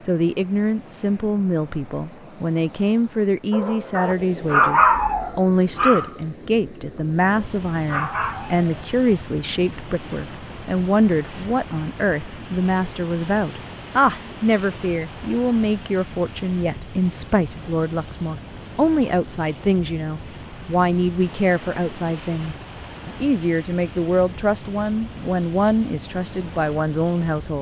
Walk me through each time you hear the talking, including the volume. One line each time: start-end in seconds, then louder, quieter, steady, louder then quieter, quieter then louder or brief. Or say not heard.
0.0-27.5 steady.